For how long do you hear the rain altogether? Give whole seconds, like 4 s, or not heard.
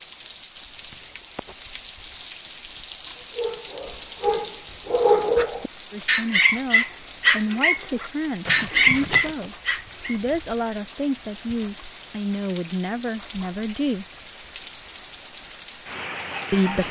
17 s.